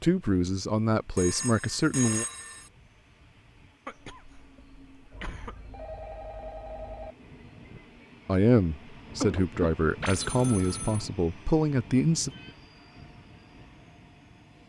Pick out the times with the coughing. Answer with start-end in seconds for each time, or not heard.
3.9-5.8, 9.2-9.8.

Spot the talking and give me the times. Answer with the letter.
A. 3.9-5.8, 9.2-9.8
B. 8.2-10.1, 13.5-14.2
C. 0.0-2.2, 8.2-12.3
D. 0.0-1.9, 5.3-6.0
C.